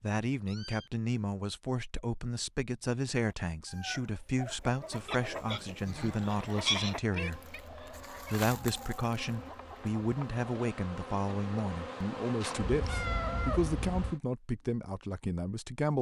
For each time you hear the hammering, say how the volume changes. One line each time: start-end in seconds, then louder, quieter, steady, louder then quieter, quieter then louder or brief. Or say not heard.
not heard.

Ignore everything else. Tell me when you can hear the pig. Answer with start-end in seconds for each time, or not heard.
5.0-7.0.